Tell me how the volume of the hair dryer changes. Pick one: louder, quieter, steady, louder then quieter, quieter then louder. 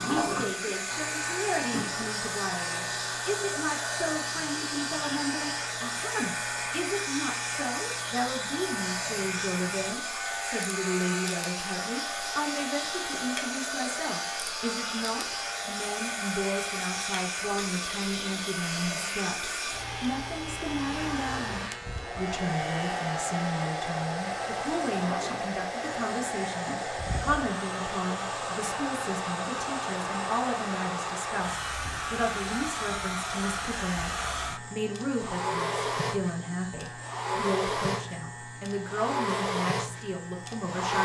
steady.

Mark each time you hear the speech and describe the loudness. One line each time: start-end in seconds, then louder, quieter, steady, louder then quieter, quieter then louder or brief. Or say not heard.
0.0-41.0 steady.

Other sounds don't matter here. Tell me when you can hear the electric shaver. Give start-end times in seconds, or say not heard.
0.0-40.9.